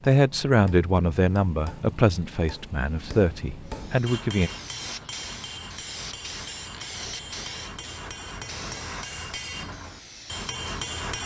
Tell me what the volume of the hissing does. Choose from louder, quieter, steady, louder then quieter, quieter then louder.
quieter.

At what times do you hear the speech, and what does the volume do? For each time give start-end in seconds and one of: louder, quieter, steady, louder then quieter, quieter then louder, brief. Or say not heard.
0.0-4.5 quieter.